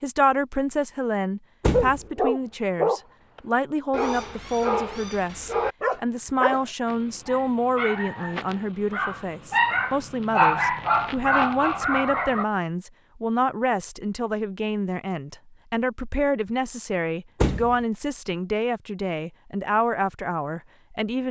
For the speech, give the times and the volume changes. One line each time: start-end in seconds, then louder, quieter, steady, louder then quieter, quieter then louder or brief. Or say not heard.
0.0-21.2 steady.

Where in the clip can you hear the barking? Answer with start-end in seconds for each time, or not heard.
1.7-12.4.